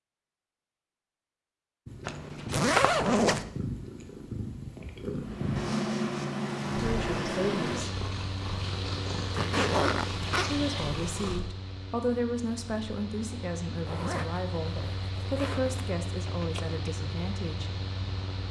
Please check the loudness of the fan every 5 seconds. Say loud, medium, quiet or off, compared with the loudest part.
off, loud, medium, medium.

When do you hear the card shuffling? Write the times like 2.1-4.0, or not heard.
2.0-3.2, 16.2-16.8.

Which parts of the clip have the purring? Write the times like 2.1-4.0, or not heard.
1.9-11.4.